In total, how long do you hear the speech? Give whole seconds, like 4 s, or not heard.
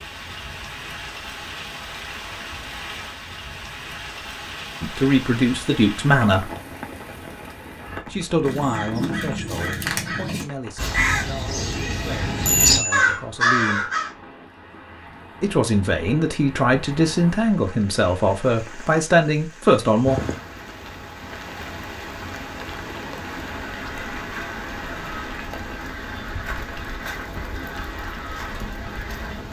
12 s.